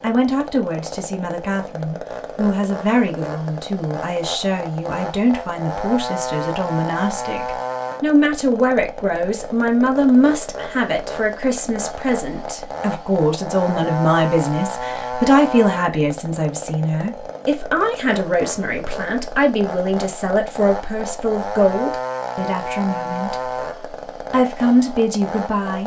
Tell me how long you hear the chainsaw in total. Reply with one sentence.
The chainsaw can be heard for 26 seconds in total.